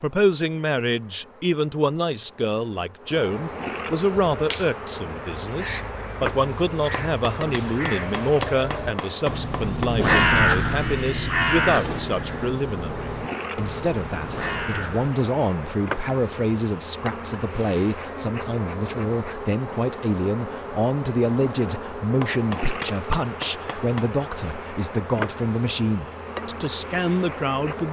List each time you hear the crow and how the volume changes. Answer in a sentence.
You can hear the crow from 4.0 to 15.2 s, getting louder then quieter.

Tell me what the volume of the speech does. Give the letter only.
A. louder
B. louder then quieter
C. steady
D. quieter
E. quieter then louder
C.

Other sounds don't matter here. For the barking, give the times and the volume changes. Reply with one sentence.
You can't hear the barking here.